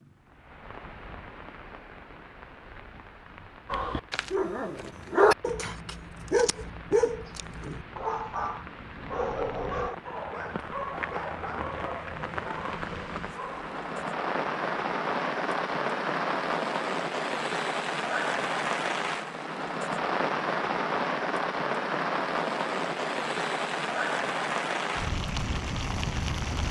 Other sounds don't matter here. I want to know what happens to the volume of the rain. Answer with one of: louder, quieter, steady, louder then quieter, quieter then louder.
louder.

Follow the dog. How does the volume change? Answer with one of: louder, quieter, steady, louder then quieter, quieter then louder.
quieter.